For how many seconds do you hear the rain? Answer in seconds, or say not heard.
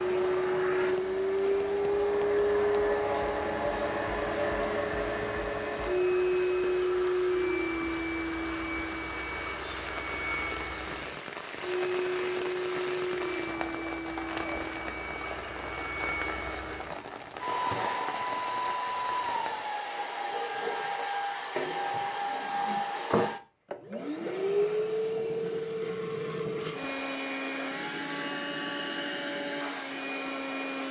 20 s.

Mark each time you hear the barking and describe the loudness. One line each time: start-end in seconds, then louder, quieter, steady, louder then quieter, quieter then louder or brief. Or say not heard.
not heard.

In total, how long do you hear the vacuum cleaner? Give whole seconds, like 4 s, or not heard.
31 s.